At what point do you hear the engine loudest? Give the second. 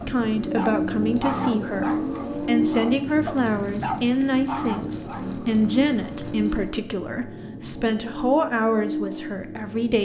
2 s.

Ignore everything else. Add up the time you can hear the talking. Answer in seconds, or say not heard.
10 s.